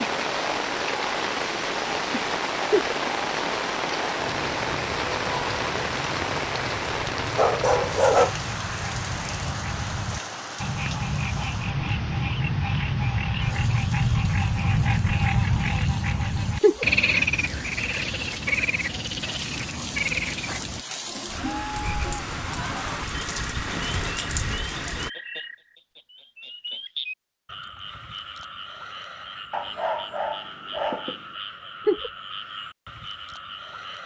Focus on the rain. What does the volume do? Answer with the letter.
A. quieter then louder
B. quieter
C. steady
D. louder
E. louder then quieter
A.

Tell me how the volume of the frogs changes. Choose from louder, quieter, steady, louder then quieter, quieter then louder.
louder then quieter.